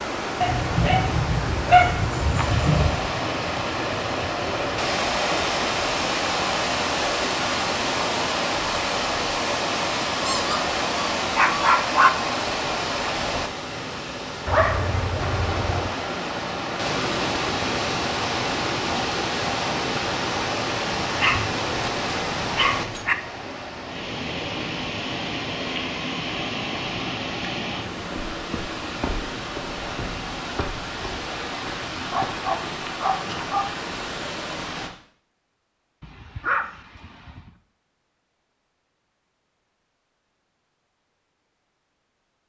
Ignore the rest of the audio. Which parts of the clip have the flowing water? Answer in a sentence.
The flowing water can be heard from 0.0 to 34.9 s.